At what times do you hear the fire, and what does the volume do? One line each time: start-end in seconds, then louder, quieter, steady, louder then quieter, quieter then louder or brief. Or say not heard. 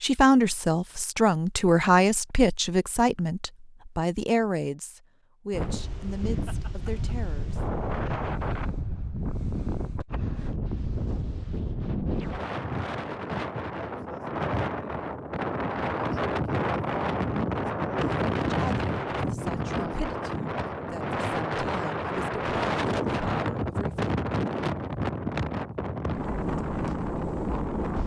not heard.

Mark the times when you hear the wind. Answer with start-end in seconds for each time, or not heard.
5.5-28.0.